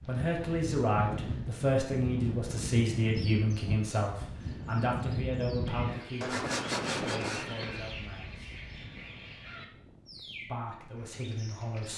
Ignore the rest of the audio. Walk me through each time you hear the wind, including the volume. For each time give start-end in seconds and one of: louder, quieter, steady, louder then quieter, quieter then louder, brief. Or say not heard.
0.0-11.9 quieter.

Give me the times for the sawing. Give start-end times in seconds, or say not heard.
6.2-7.5.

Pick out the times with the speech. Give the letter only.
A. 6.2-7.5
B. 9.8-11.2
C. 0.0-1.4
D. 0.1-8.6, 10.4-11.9
D.